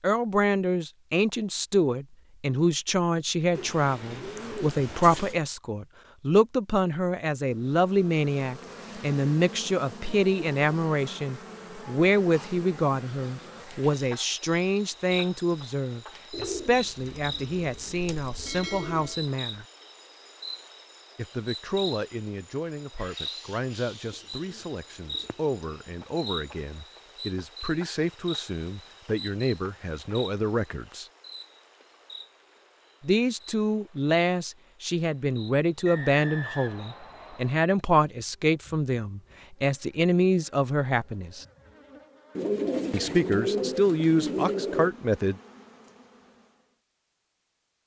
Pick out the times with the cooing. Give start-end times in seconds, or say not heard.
3.5-5.4, 16.3-19.2, 24.1-25.6, 42.4-44.9.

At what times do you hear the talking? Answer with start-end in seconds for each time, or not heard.
0.0-19.6, 21.1-31.1, 33.0-41.5, 42.9-45.4.